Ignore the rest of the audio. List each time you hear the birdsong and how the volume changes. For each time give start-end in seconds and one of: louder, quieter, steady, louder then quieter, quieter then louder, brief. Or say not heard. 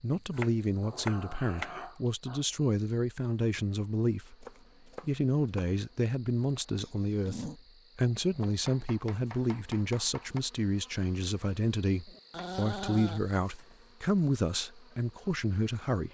not heard.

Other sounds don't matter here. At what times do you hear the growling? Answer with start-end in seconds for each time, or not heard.
0.8-2.5, 6.8-7.6, 12.1-13.2.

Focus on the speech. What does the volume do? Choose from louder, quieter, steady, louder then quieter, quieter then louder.
steady.